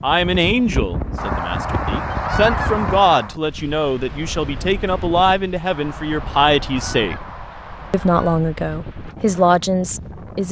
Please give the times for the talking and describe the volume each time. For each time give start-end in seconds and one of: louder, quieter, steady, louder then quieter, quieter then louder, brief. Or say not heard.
0.0-7.2 steady
7.9-10.4 brief.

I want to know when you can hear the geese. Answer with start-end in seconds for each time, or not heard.
1.1-3.4, 5.7-8.4.